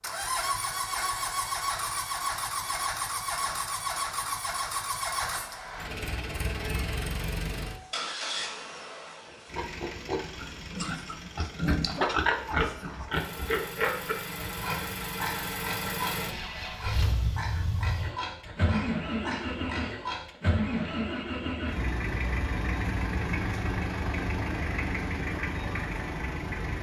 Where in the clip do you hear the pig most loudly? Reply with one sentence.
The volume of the pig peaks at 12 seconds.